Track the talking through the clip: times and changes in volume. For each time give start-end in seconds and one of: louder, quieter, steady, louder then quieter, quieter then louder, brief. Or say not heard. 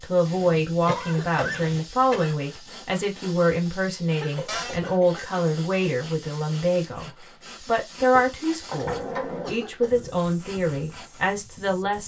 0.0-12.0 steady.